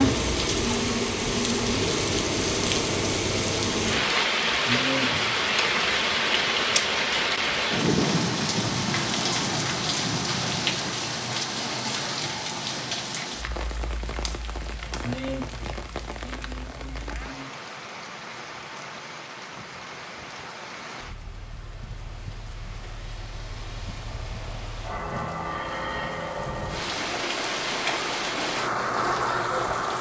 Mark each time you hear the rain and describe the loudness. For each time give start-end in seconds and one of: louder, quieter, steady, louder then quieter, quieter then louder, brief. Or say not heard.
0.0-29.9 quieter then louder.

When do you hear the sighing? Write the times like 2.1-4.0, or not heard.
4.7-5.4, 15.0-17.5.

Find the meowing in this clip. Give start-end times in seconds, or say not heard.
not heard.